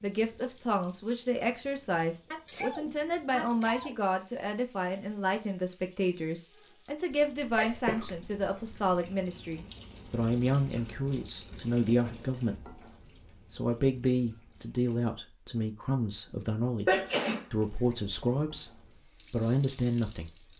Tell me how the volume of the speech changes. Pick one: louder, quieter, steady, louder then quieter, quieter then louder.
steady.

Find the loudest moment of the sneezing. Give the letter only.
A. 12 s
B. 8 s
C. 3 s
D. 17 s
D.